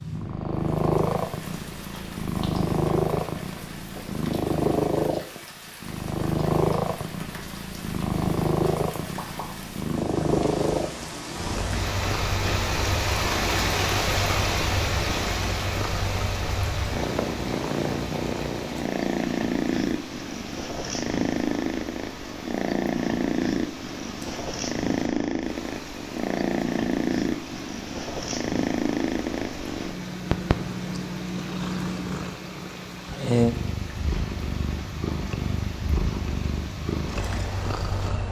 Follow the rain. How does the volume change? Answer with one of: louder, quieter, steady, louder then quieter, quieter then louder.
louder then quieter.